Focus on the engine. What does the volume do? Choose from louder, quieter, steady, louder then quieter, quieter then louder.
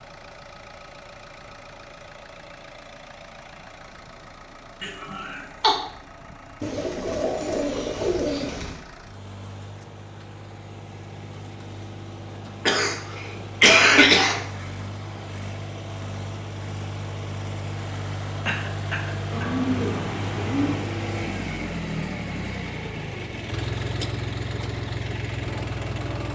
louder.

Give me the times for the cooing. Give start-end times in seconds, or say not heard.
6.6-8.8, 19.3-20.9.